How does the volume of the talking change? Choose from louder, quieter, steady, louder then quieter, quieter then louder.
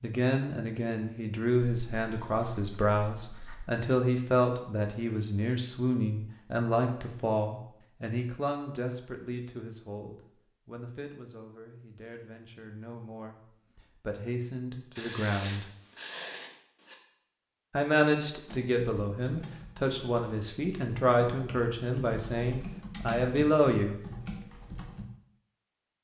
quieter then louder.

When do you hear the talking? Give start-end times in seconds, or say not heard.
0.0-15.7, 17.7-23.9.